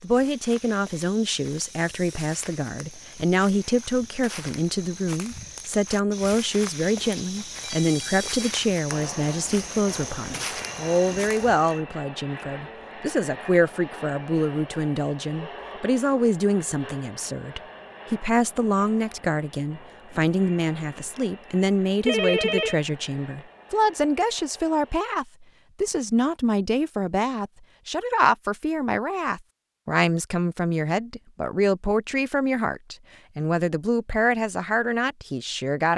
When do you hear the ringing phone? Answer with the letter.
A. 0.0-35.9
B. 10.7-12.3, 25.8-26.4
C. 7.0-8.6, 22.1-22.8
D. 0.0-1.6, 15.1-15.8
C.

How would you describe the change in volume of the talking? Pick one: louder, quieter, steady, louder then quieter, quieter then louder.
steady.